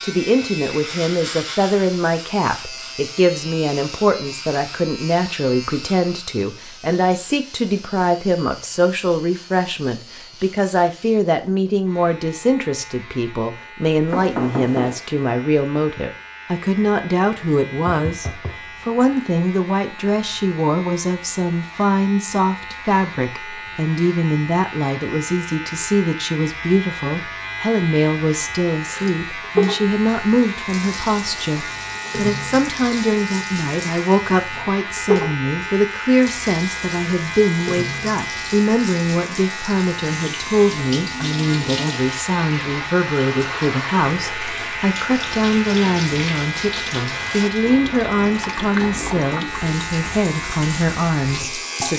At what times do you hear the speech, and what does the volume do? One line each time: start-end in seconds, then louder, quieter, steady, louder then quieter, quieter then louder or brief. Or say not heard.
0.0-51.9 steady.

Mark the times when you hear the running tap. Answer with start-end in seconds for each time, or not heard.
28.9-51.9.